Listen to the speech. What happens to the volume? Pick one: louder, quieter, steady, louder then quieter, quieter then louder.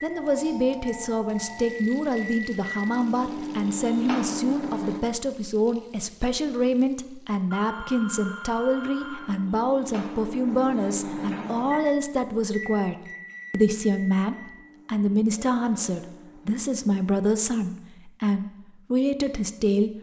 steady.